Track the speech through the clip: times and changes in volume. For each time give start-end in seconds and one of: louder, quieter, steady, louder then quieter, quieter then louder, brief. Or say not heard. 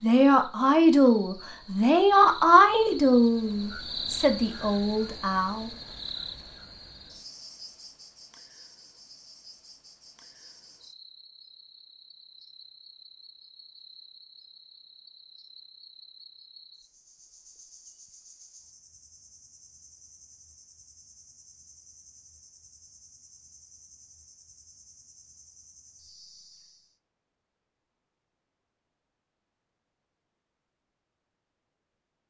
0.0-5.7 quieter.